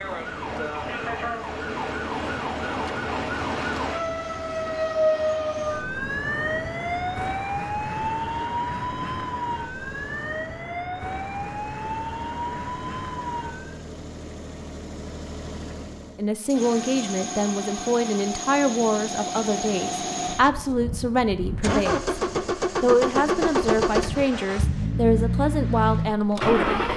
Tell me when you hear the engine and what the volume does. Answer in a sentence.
The engine can be heard from 0.0 to 26.9 s, getting louder.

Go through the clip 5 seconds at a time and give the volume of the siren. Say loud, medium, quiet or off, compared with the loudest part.
loud, loud, medium, off, off, off.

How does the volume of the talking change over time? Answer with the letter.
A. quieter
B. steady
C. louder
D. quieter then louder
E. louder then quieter
B.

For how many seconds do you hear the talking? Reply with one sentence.
You can hear the talking for 10 seconds altogether.